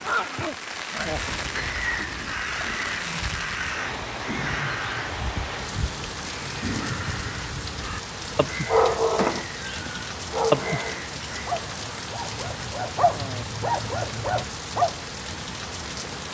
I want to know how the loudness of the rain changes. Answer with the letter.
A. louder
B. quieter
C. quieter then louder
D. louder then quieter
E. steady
E.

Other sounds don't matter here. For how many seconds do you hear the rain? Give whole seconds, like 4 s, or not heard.
16 s.